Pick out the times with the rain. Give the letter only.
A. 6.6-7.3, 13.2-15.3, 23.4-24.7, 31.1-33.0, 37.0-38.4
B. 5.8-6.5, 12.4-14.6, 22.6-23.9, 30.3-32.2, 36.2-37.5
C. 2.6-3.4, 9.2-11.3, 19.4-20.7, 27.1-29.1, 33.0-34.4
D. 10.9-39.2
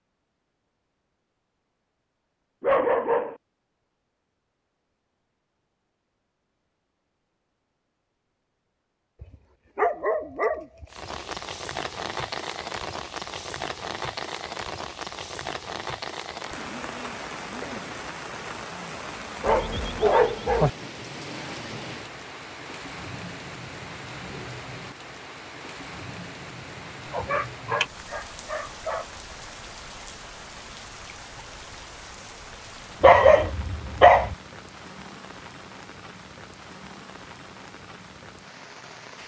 D.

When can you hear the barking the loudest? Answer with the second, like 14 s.
33 s.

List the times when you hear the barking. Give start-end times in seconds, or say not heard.
2.6-3.4, 9.2-11.3, 19.4-20.7, 27.1-29.1, 33.0-34.4.